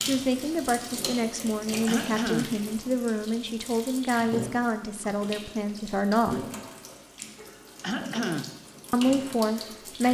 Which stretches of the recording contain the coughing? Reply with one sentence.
The coughing can be heard from 1.9 to 2.6 s and from 7.8 to 8.6 s.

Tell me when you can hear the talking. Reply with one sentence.
The talking can be heard from 0.0 to 6.4 s and from 8.9 to 10.0 s.